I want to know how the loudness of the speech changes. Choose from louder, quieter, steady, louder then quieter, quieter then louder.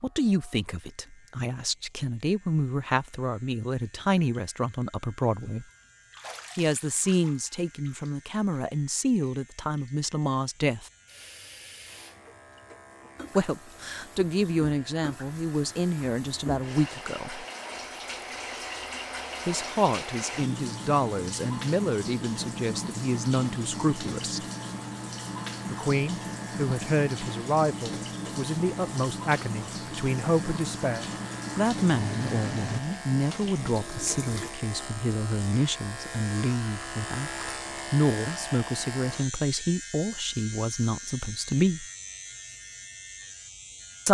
steady.